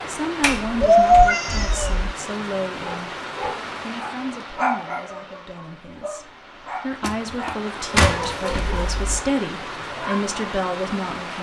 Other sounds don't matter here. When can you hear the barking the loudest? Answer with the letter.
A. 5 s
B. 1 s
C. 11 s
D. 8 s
A.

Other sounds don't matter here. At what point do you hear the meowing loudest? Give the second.
1 s.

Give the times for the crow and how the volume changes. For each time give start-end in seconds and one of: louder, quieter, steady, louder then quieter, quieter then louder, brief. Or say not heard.
not heard.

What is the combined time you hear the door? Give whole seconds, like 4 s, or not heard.
3 s.